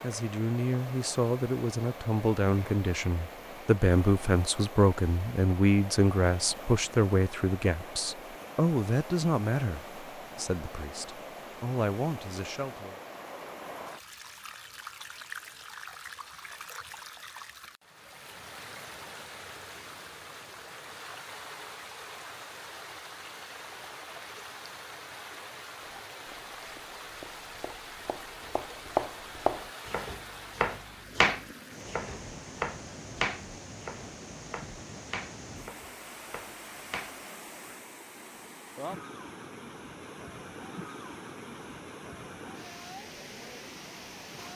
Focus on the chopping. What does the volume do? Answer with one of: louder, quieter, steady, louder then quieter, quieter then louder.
louder then quieter.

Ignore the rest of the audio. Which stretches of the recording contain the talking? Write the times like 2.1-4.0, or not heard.
0.0-12.9.